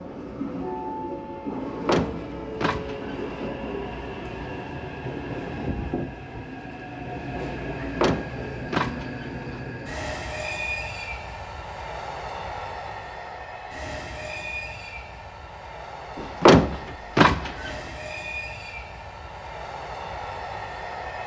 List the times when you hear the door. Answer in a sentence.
The door can be heard from 1.6 to 3.5 s, from 8.0 to 9.6 s and from 16.1 to 17.7 s.